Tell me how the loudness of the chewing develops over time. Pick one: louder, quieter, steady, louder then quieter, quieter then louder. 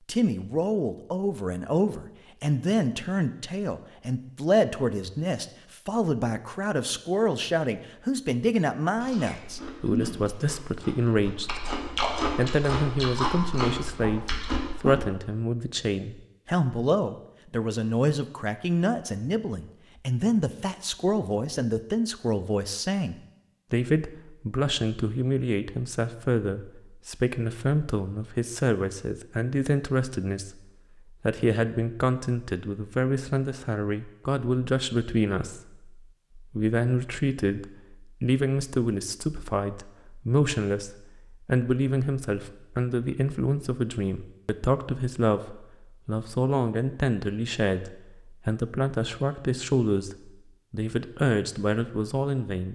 quieter then louder.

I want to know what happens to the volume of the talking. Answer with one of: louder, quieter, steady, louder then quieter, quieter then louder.
steady.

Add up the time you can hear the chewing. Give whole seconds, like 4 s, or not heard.
6 s.